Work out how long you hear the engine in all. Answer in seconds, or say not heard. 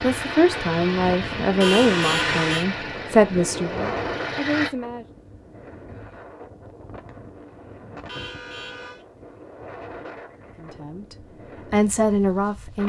5 s.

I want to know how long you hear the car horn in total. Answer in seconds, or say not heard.
2 s.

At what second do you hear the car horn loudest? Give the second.
2 s.